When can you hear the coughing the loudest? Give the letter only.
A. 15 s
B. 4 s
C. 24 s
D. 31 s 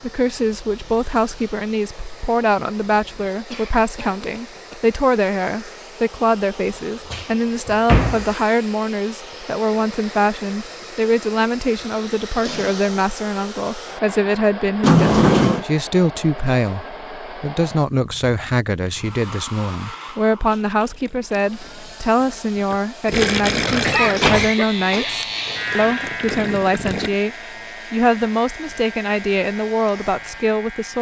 C.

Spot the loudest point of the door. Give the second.
15 s.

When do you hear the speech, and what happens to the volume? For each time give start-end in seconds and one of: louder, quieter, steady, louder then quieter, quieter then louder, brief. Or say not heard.
0.0-30.9 steady.